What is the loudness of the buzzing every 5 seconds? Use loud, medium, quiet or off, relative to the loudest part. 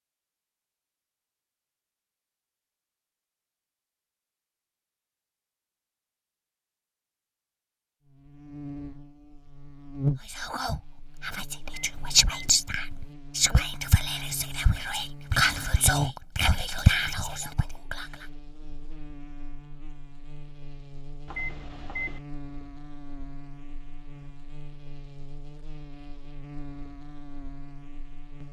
off, medium, loud, loud, medium, medium.